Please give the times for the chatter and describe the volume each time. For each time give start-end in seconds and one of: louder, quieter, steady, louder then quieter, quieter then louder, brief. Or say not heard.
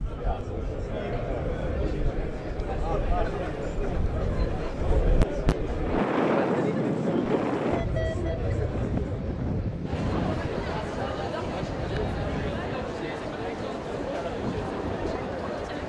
0.0-15.8 steady.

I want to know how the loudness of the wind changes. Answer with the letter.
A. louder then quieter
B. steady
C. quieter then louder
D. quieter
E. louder
A.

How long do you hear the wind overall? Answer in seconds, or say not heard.
16 s.